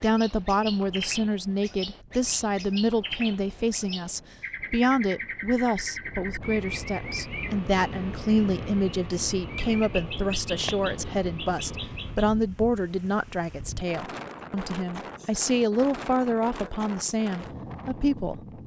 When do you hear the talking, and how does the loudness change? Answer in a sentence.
The talking can be heard from 0.0 to 18.4 s, at a steady volume.